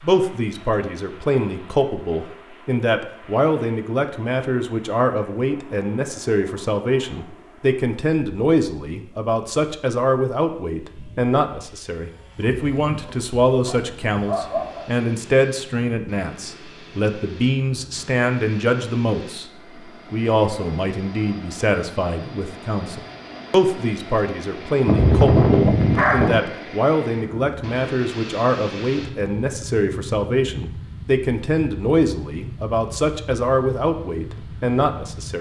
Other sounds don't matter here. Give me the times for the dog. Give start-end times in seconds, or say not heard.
11.9-14.8, 24.9-26.4.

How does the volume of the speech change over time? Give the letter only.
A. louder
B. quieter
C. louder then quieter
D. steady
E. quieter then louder
D.